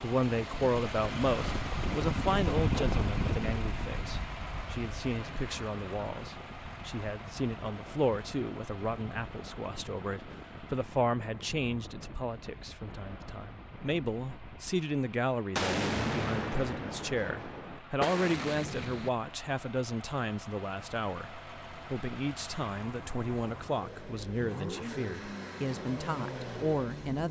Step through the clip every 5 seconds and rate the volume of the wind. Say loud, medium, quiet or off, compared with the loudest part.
loud, quiet, quiet, off, off, off.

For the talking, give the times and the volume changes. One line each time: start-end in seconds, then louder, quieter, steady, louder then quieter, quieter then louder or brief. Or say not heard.
0.0-27.2 steady.